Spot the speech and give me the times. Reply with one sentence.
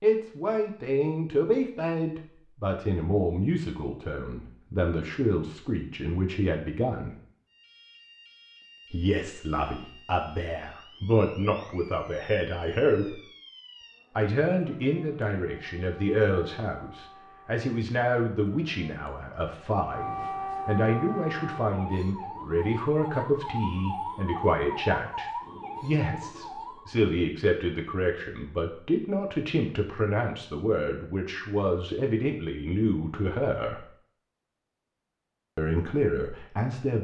The speech can be heard from 0.0 to 7.1 s, from 8.9 to 13.2 s, from 14.2 to 33.9 s and from 35.5 to 36.9 s.